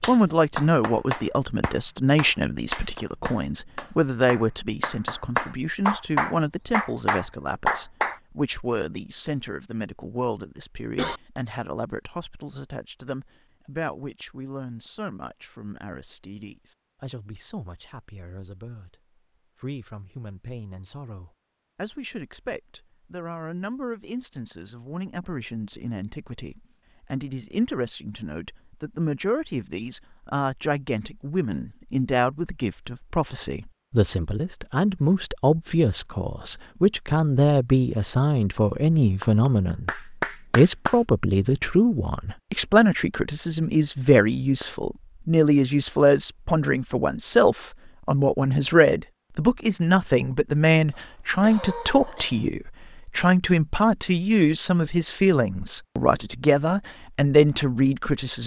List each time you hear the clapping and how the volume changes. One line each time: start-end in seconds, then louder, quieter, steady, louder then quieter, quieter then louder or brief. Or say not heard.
0.0-8.2 louder
39.2-41.0 brief.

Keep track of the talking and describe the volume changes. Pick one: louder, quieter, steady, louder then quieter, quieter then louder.
quieter then louder.